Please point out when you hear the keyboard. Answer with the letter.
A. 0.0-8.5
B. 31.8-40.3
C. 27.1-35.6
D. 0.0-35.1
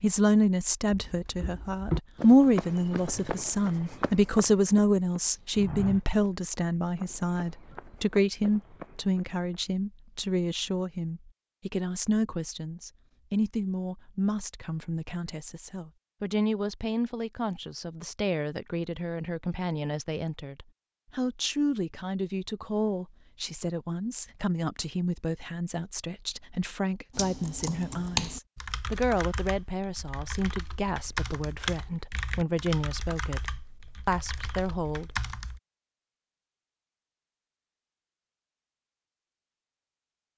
C.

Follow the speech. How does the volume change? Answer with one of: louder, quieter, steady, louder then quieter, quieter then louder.
quieter.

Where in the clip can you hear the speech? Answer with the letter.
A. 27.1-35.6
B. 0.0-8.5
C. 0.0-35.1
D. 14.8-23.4
C.